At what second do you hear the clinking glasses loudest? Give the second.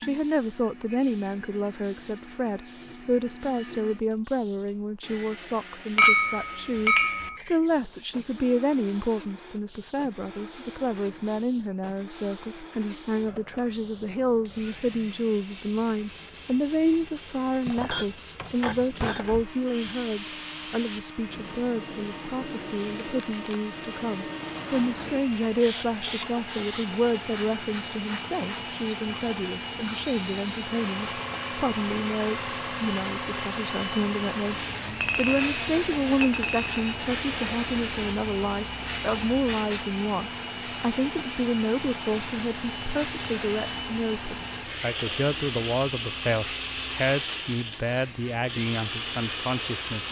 6 s.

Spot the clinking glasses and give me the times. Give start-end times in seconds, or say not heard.
6.0-7.4, 17.6-19.5, 35.0-37.0.